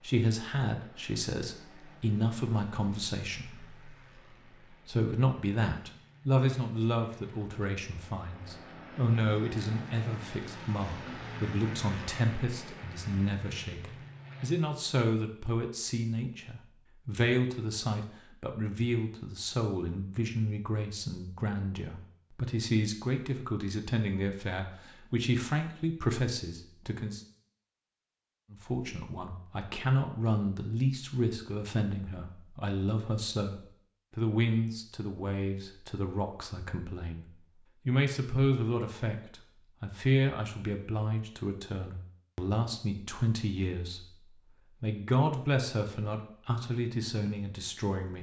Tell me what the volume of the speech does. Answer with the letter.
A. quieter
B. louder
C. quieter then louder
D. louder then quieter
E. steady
E.